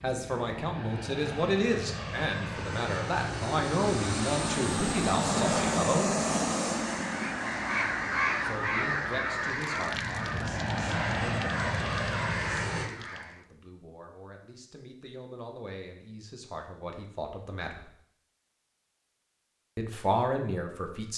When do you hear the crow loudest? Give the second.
8 s.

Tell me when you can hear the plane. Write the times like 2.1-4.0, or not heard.
0.0-12.9.